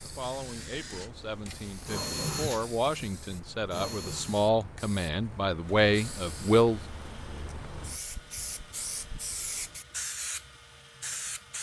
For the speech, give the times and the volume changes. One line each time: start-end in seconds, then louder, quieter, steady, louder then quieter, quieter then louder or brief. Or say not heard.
0.0-6.8 louder.